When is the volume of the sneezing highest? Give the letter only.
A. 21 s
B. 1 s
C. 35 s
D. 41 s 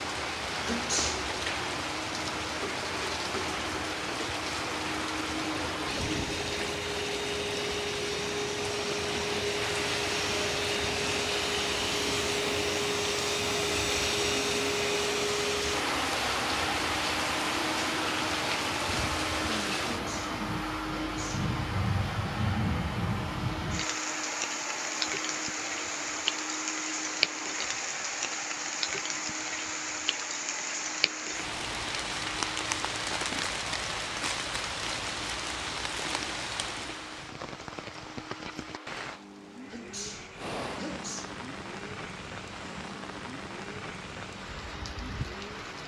B.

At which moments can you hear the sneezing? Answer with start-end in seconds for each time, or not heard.
0.7-1.3, 19.9-21.5, 39.6-41.4.